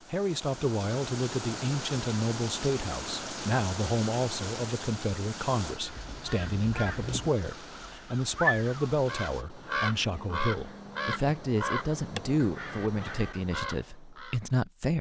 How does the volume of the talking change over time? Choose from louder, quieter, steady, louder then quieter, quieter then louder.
steady.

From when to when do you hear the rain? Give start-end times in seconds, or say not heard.
0.0-9.4.